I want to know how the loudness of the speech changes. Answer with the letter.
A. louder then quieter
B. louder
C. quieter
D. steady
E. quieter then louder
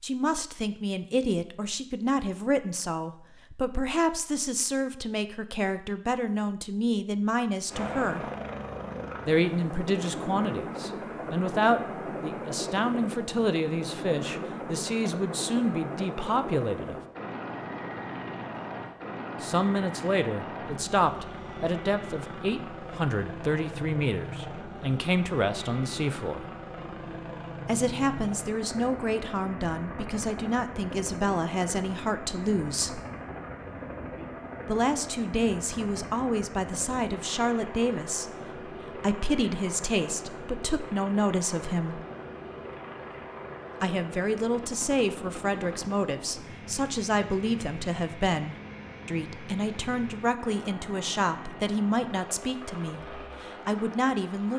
D.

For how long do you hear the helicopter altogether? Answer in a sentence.
The helicopter can be heard for 47 seconds in total.